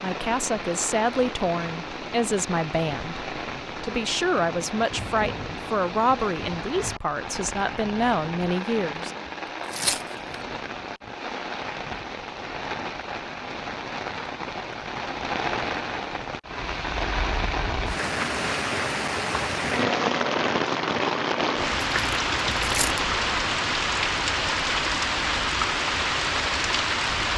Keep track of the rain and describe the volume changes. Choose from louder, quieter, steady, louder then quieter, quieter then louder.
louder.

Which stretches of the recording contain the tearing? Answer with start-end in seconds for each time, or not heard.
9.7-10.3, 21.8-23.0.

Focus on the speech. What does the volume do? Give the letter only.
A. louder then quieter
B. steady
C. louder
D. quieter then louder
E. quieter
B.